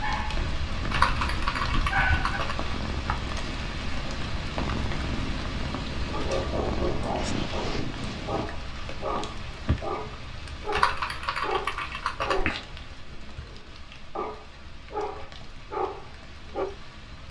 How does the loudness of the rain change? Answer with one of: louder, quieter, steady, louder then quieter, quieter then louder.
quieter.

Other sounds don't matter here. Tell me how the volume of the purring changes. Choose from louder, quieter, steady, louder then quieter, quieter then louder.
louder.